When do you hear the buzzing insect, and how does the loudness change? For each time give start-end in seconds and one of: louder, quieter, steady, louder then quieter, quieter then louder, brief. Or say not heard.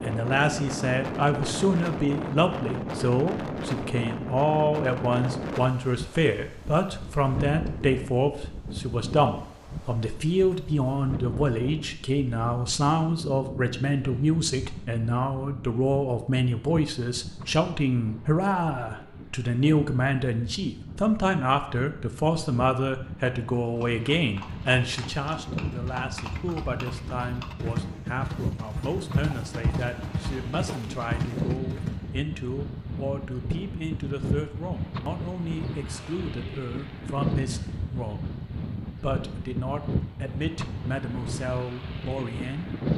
not heard.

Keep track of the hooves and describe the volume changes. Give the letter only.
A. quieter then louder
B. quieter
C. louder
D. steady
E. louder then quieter
C.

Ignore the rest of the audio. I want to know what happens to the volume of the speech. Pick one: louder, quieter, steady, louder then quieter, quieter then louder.
quieter.